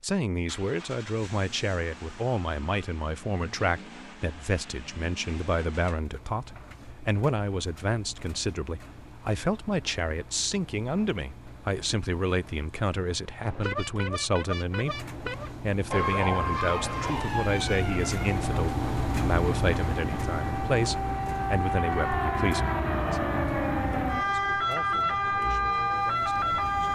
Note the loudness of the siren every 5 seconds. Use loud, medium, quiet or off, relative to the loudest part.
off, off, off, medium, loud, loud.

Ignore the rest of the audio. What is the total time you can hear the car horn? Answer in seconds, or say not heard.
2 s.